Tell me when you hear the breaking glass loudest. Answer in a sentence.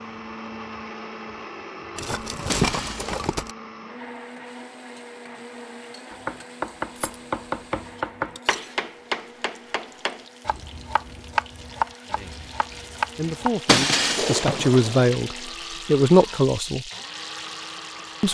The volume of the breaking glass peaks at 14 seconds.